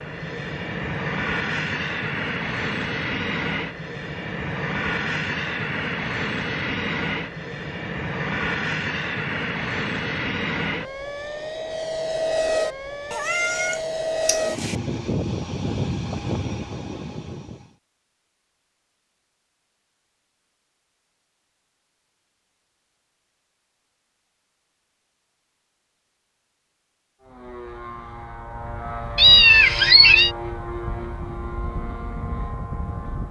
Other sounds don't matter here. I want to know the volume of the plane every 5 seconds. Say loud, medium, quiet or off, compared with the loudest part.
loud, loud, loud, loud, off, medium, medium.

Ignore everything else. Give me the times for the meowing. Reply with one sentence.
The meowing can be heard from 13.1 to 14.8 s and from 29.1 to 30.3 s.